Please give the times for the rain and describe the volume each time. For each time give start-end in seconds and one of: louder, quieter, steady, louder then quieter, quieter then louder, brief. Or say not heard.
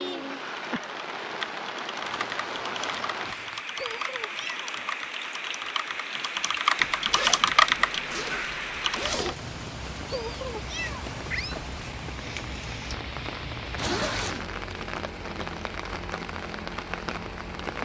0.0-17.8 steady.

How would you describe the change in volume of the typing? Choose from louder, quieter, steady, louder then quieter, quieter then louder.
louder.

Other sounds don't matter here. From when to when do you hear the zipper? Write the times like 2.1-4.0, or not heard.
2.0-3.6, 6.8-9.4, 13.8-14.4.